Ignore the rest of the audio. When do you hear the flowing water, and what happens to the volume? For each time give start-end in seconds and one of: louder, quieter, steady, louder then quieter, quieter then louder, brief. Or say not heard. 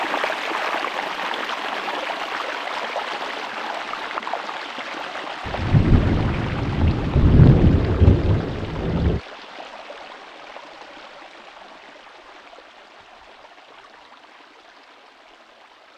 0.0-15.9 quieter.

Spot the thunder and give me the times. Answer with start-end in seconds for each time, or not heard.
5.5-9.2.